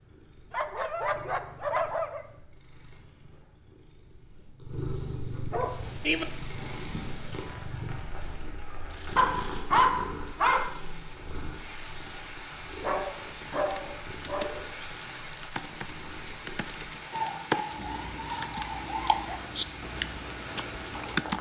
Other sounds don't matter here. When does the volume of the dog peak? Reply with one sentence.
The loudest moment of the dog is at 10 seconds.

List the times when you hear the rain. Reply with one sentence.
The rain can be heard from 5.7 to 21.3 s.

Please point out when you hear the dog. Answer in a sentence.
You can hear the dog from 0.5 to 2.2 s, from 5.5 to 6.2 s, from 9.2 to 10.7 s, from 12.8 to 14.6 s and from 17.1 to 19.4 s.